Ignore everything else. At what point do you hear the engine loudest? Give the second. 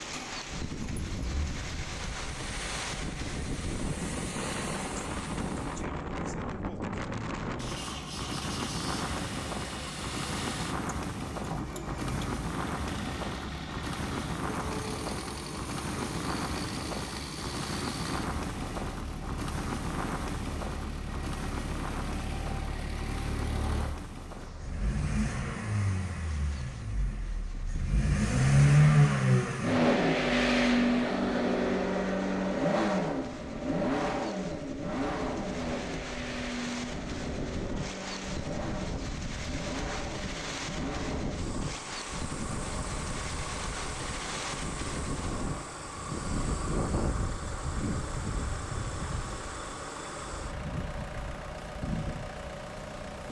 29 s.